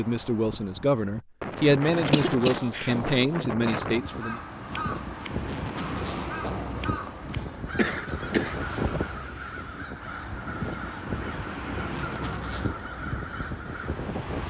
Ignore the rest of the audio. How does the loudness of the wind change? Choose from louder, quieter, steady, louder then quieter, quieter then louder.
steady.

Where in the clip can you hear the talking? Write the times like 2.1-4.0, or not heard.
0.0-4.4.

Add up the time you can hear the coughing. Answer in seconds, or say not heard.
2 s.